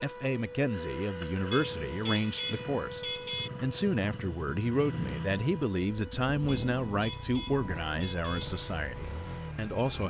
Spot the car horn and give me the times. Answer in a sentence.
The car horn can be heard from 1.5 to 3.5 s and from 6.5 to 8.4 s.